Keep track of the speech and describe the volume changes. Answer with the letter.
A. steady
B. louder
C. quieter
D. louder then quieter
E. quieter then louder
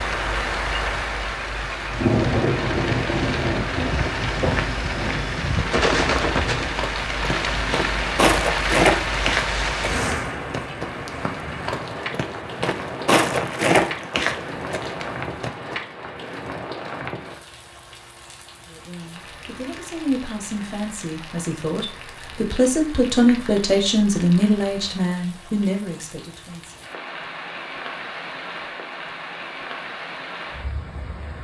D.